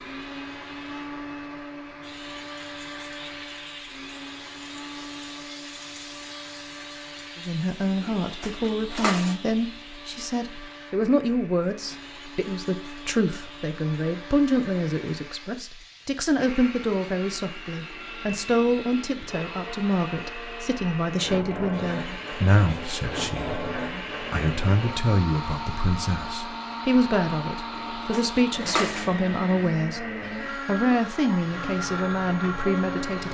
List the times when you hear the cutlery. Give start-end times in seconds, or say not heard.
8.2-9.4, 27.7-29.1.